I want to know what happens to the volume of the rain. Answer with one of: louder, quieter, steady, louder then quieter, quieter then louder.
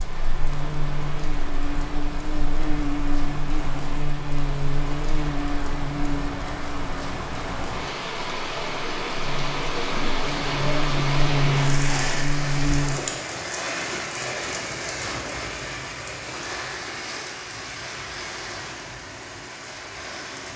louder then quieter.